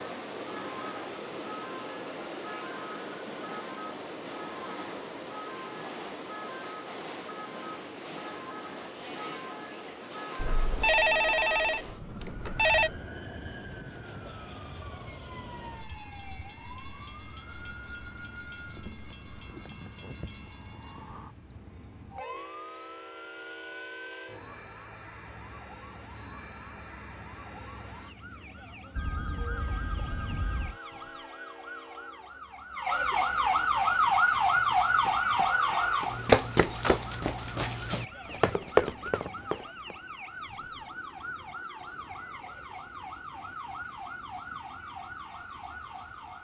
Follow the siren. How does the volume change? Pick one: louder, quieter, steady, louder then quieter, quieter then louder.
louder then quieter.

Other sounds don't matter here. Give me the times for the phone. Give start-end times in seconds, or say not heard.
10.3-13.0, 28.9-30.8.